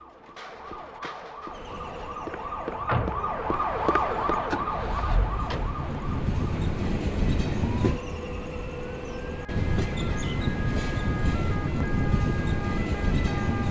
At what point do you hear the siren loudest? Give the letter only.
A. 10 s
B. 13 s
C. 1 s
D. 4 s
D.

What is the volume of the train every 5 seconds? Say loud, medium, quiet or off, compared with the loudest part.
quiet, loud, loud.